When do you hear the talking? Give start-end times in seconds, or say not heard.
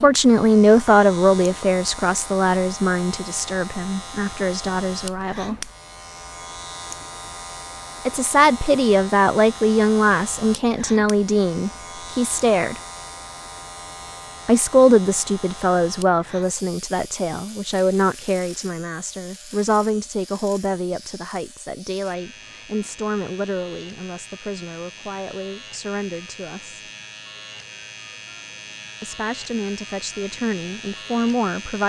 0.0-5.5, 8.1-12.8, 14.4-26.8, 29.0-31.8.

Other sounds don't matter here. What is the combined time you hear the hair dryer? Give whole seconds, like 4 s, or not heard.
not heard.